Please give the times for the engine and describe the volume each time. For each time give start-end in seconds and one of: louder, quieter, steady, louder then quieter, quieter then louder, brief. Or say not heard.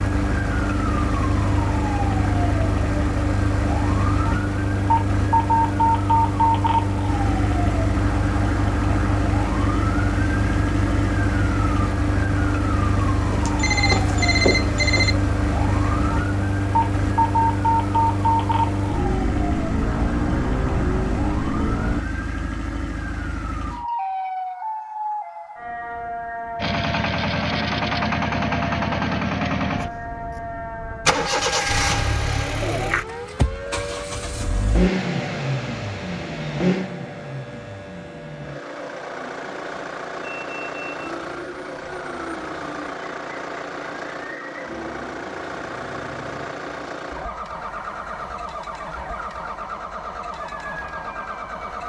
0.0-22.1 steady
26.6-51.8 quieter.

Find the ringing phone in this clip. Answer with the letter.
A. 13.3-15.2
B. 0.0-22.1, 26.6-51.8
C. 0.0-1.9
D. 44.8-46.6
A.